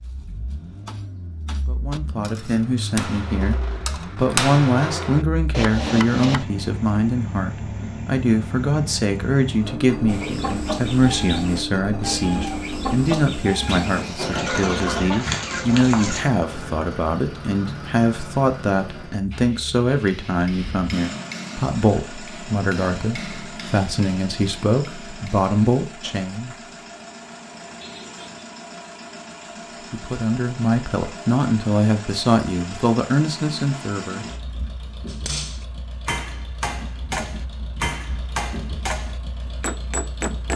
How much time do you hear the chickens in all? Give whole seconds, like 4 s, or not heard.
6 s.